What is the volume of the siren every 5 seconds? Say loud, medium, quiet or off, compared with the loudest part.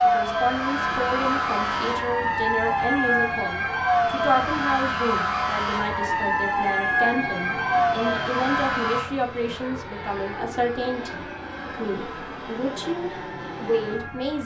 loud, loud, quiet.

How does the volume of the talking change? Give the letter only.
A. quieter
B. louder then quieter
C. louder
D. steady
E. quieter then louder
D.